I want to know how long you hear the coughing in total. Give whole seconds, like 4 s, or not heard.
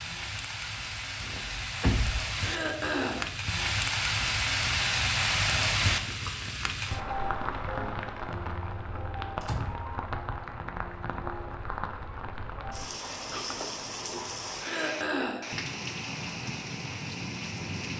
2 s.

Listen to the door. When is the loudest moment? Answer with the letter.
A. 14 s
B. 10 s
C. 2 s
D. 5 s
C.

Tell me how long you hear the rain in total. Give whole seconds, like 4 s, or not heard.
18 s.